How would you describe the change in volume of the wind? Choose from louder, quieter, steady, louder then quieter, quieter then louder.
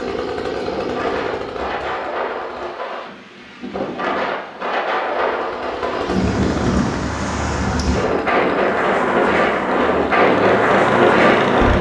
louder.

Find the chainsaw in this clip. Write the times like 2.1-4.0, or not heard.
0.0-2.8, 5.2-11.7.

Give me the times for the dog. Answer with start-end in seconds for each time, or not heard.
not heard.